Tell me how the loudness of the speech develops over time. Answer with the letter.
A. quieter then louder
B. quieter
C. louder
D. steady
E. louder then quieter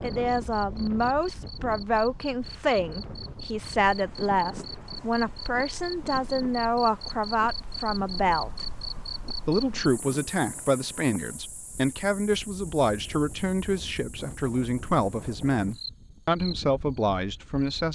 D.